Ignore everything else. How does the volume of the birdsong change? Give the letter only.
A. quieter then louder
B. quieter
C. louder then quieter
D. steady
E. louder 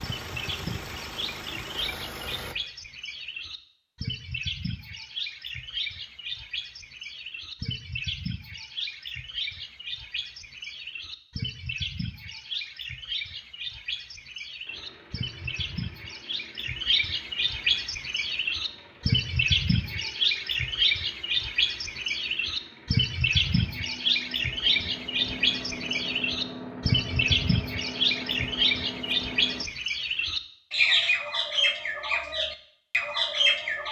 E.